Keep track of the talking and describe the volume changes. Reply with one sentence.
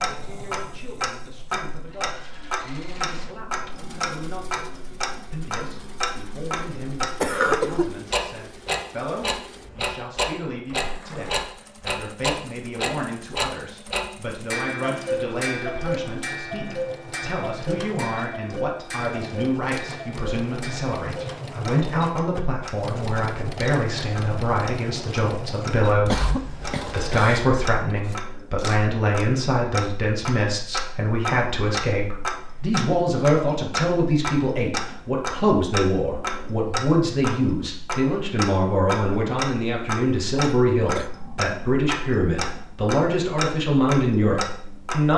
The loudness of the talking goes up.